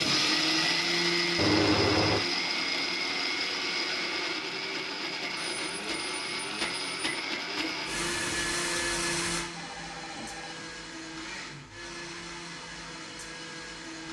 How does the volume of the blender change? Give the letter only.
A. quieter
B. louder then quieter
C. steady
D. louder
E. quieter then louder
A.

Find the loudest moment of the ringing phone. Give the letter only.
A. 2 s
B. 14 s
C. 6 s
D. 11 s
A.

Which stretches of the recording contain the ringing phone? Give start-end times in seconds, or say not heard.
1.4-2.2, 5.3-7.2, 9.5-10.8.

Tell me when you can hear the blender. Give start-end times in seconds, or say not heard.
0.0-14.0.